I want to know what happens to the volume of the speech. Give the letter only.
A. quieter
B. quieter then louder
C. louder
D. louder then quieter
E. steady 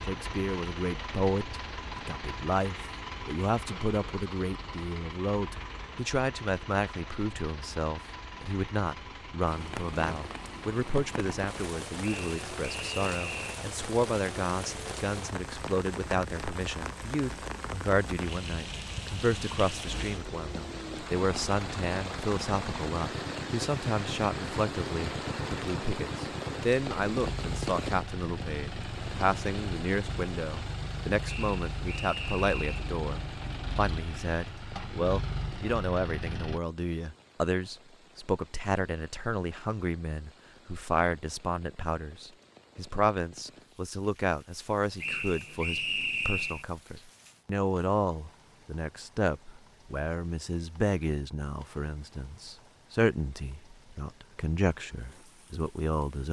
E.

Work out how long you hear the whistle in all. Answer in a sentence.
You can hear the whistle for 5 seconds altogether.